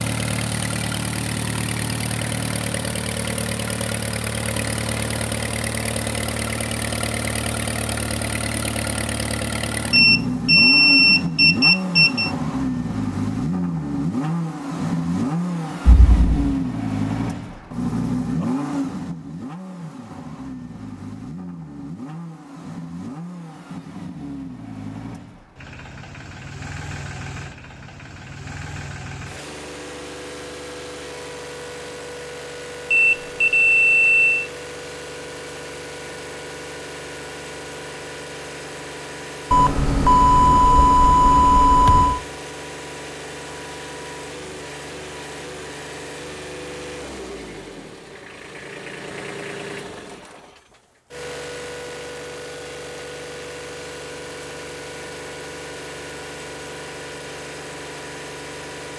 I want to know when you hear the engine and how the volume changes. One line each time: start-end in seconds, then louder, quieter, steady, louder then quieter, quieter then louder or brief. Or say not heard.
0.0-58.9 quieter.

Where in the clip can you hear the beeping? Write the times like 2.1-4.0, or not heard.
9.9-12.3, 32.9-34.5, 39.5-42.2.